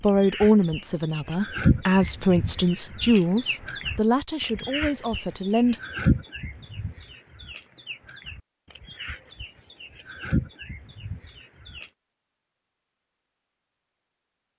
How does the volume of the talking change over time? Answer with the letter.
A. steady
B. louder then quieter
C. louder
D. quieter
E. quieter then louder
D.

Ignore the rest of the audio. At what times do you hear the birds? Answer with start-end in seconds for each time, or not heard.
0.0-11.9.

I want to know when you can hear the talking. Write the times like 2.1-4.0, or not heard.
0.0-5.8.